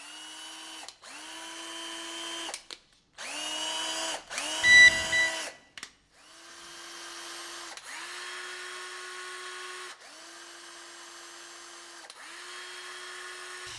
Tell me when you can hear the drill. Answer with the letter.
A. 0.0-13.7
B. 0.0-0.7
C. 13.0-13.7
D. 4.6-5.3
A.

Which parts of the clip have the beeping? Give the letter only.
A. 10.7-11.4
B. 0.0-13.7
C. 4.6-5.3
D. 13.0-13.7
C.